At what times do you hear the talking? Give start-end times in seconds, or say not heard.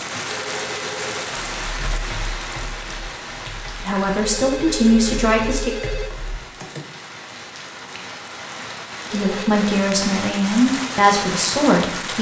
3.8-5.8, 9.1-12.1.